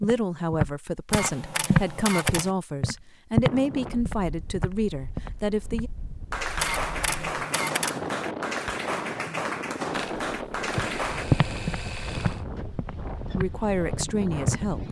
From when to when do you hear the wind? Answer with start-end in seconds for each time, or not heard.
3.5-14.8.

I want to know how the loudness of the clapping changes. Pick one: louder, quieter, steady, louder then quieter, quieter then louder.
steady.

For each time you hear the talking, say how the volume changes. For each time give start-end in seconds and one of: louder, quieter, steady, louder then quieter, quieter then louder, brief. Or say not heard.
0.0-5.9 steady
13.3-14.8 brief.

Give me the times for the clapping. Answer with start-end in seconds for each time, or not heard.
6.3-11.2.